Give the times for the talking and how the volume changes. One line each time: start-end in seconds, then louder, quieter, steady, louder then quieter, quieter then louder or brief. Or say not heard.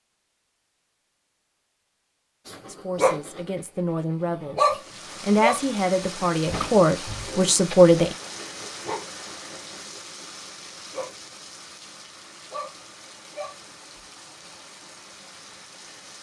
2.6-8.2 louder.